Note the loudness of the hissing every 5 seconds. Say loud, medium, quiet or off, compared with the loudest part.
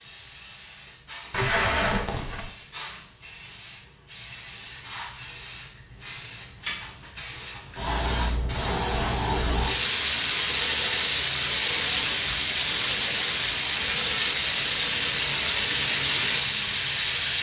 quiet, medium, loud, loud.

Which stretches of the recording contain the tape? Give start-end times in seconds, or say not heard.
1.3-2.5.